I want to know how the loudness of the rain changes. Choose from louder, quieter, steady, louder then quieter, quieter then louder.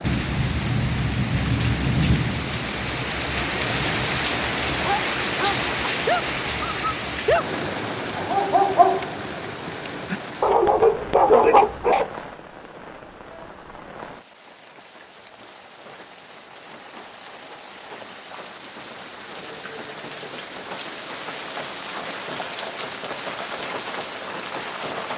quieter then louder.